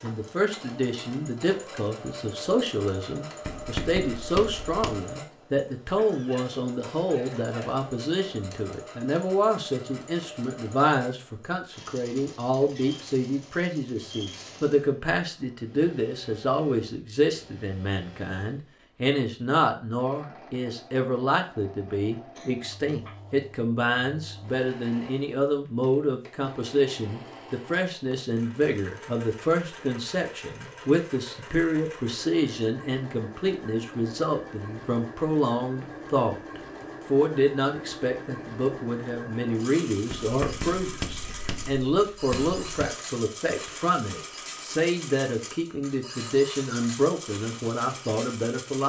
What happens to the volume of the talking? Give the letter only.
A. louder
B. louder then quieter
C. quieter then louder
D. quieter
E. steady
E.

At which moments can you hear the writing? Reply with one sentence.
You can hear the writing from 3.5 to 5.0 s and from 40.1 to 43.0 s.